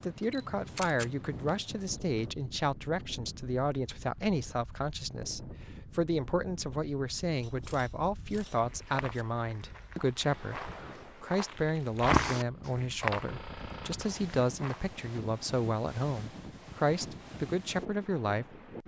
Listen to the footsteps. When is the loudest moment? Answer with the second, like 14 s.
12 s.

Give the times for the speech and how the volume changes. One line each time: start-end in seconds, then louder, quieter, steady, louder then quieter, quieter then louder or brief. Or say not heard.
0.0-18.6 steady.